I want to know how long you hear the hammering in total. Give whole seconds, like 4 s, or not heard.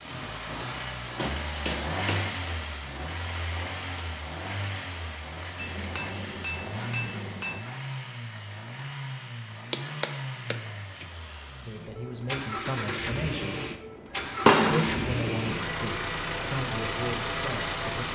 6 s.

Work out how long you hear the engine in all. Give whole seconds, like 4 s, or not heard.
18 s.